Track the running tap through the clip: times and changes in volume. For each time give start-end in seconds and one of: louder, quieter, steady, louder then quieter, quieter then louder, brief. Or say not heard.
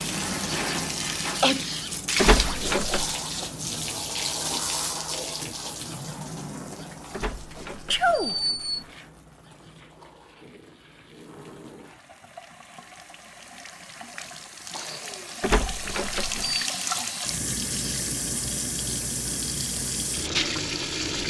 0.0-21.2 quieter then louder.